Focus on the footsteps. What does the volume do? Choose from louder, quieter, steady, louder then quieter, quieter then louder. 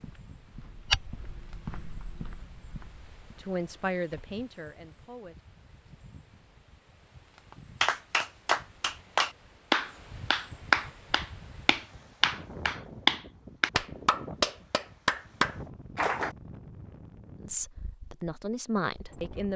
quieter.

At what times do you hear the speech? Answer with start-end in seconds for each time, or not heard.
3.4-5.3, 17.4-19.5.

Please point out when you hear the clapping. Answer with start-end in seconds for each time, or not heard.
7.8-16.4.